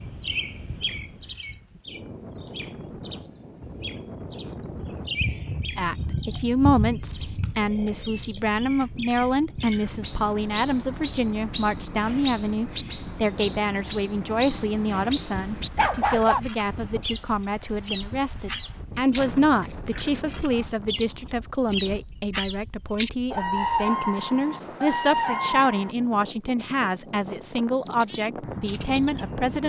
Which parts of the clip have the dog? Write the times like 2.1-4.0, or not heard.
15.3-16.4.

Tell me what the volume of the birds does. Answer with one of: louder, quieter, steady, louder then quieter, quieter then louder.
louder.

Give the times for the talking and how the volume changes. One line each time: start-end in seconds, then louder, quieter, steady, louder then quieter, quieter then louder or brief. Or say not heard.
5.8-29.6 steady.